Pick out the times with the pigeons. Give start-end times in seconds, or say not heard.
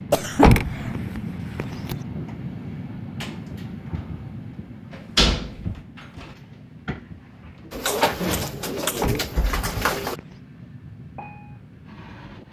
7.7-10.2.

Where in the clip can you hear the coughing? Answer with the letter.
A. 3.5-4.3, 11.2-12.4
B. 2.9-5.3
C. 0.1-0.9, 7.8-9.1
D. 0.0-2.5
C.